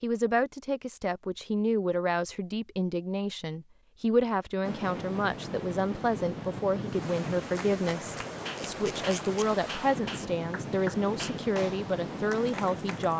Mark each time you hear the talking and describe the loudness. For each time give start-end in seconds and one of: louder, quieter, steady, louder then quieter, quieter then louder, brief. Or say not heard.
0.0-13.1 steady.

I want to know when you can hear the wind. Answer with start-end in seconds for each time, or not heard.
4.6-13.1.